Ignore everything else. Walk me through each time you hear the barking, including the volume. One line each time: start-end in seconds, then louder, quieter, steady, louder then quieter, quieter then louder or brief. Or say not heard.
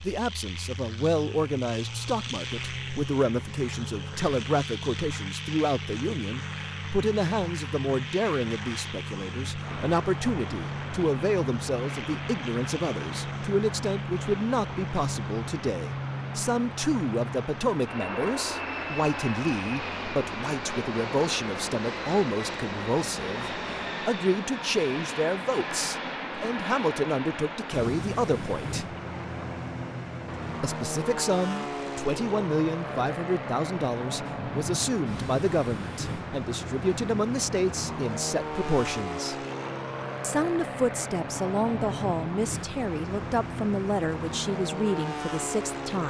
not heard.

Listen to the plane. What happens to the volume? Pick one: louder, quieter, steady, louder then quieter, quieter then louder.
steady.